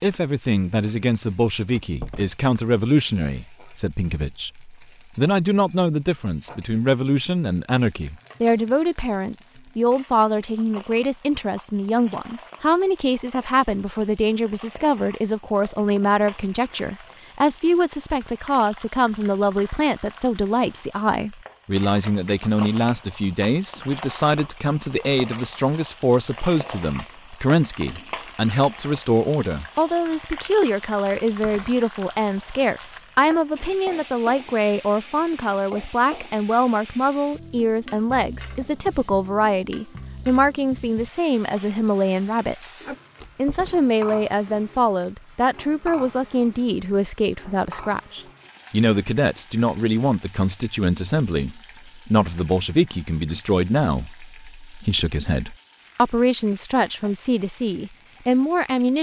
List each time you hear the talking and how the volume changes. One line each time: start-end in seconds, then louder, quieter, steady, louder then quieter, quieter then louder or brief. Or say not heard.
0.0-58.9 steady.